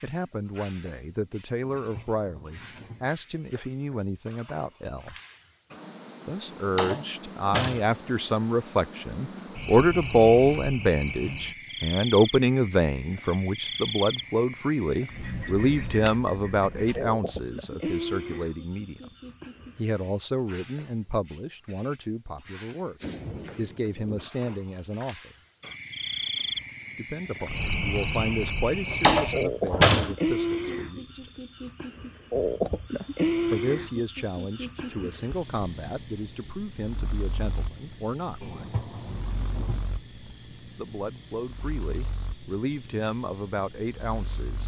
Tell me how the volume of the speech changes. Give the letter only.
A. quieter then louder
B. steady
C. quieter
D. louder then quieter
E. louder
D.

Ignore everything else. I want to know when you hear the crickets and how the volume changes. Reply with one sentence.
The crickets can be heard from 0.0 to 44.6 s, getting louder then quieter.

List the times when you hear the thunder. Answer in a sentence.
You can hear the thunder from 1.8 to 3.1 s, from 23.0 to 24.3 s and from 38.4 to 39.9 s.